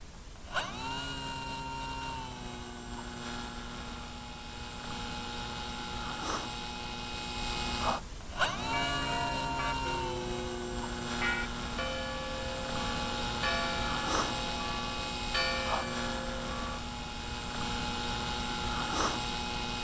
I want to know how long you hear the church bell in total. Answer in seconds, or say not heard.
8 s.